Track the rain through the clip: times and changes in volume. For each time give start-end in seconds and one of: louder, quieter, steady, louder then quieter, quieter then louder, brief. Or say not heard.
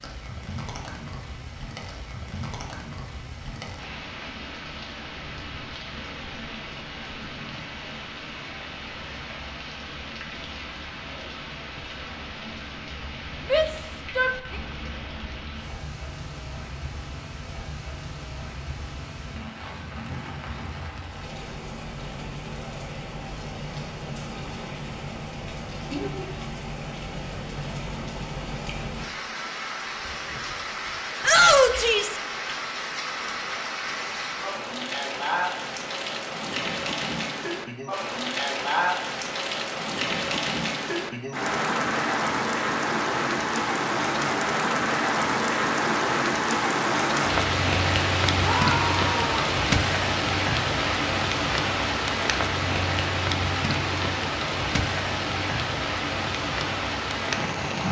0.0-57.8 louder.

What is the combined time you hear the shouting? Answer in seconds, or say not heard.
3 s.